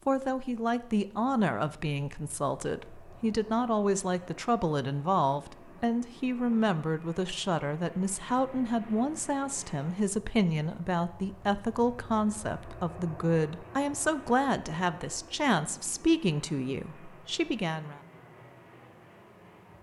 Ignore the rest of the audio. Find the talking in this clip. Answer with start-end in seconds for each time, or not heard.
0.1-18.0.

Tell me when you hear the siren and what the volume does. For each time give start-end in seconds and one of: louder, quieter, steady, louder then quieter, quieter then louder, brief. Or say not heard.
not heard.